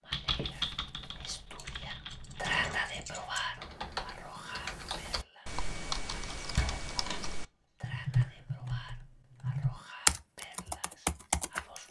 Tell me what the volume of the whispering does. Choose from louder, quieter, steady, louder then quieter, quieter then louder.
louder then quieter.